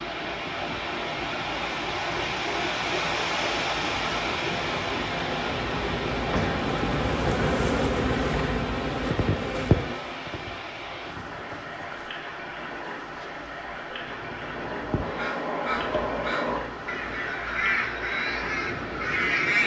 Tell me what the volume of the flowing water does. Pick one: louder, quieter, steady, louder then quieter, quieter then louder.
quieter.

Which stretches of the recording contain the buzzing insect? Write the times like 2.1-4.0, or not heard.
0.0-19.4.